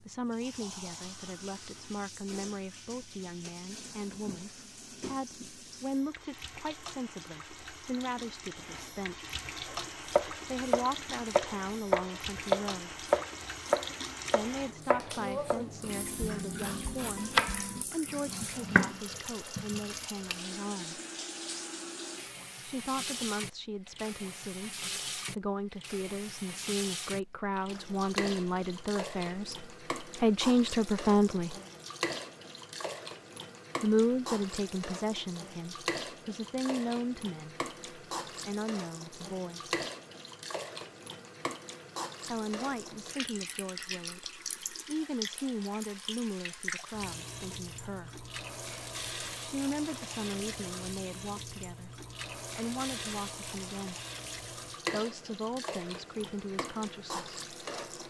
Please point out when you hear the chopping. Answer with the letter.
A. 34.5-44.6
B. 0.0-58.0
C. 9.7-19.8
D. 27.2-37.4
C.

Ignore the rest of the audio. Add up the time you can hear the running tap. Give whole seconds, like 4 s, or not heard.
58 s.